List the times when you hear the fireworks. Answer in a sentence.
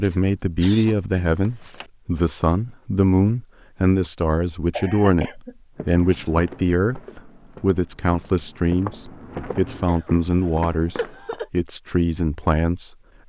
You can't hear the fireworks here.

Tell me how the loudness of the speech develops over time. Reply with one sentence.
The volume of the speech stays about the same.